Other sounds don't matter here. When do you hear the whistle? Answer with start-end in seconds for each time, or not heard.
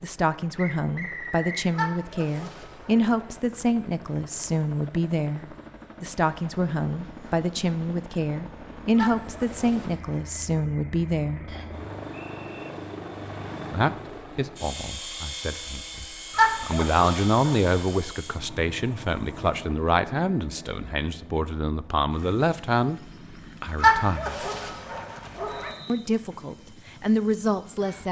0.6-1.7, 11.4-12.7, 25.4-26.1.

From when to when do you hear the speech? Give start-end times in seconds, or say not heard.
0.0-11.4, 13.7-23.0, 23.6-24.4, 25.9-28.0.